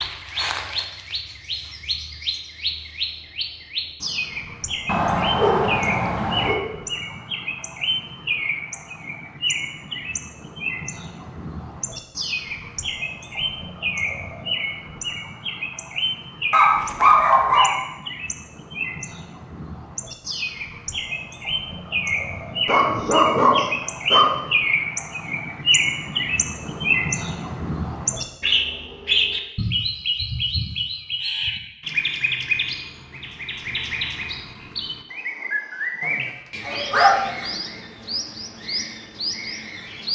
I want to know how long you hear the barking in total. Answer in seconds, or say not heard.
6 s.